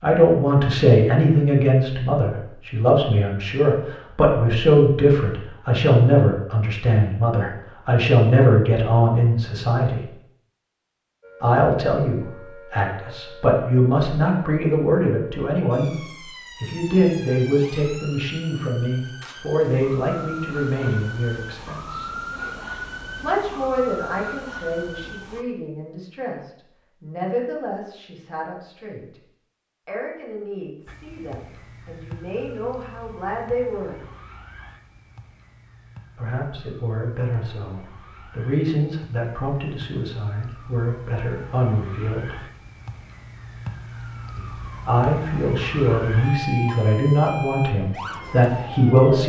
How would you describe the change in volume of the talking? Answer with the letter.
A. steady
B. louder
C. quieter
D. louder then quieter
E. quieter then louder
E.